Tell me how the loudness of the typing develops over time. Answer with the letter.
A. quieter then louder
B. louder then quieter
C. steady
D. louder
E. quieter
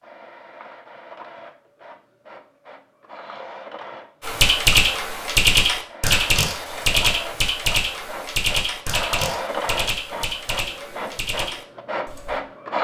E.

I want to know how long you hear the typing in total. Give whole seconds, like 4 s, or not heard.
8 s.